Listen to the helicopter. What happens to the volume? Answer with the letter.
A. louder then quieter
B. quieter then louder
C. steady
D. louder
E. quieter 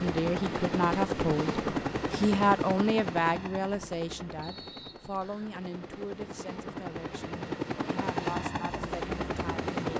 B.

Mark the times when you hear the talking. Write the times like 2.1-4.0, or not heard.
0.0-9.7.